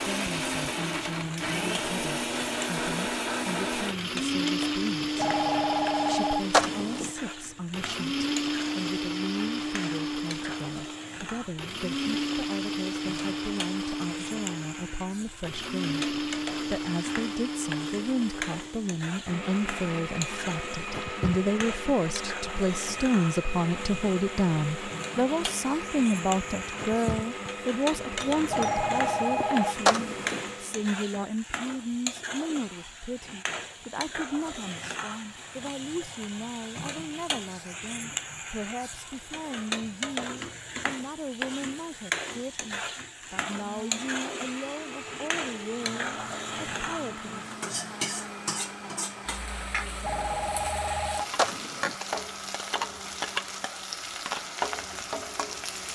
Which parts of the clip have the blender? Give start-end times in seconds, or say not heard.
0.0-30.9, 43.6-55.9.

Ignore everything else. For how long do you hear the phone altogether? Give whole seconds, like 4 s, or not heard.
6 s.